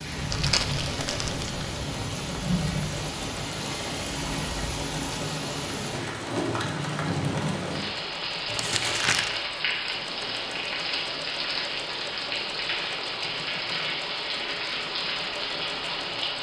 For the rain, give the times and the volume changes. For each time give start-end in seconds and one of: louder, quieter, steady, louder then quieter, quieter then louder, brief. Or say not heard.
0.0-16.3 steady.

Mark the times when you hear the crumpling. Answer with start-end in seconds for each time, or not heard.
0.3-1.6, 8.4-9.3.